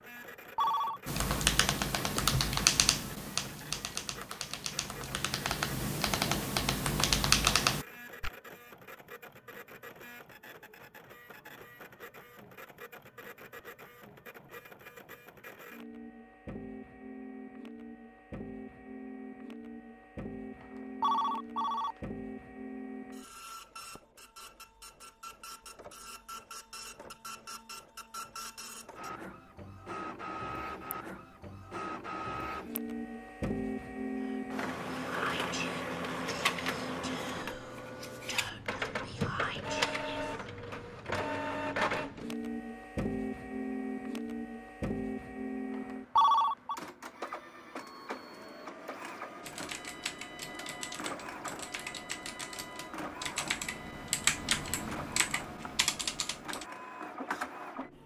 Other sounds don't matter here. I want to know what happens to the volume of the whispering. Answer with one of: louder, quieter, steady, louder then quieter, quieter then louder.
quieter then louder.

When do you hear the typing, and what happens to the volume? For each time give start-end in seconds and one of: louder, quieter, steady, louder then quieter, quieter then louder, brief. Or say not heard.
1.1-8.3 quieter then louder
49.4-56.6 louder.